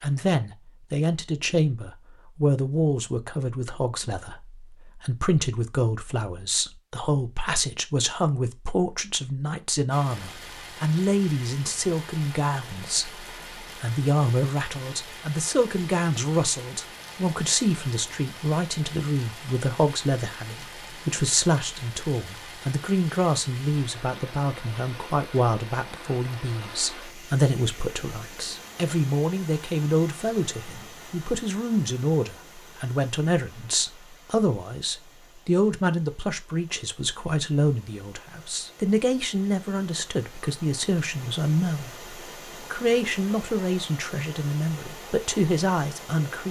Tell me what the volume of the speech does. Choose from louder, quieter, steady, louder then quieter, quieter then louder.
steady.